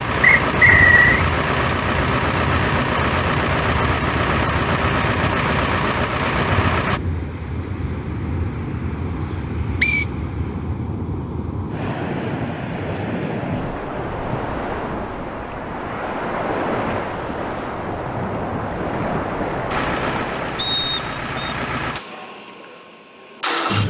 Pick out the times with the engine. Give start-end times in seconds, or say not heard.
0.0-7.0, 19.7-23.8.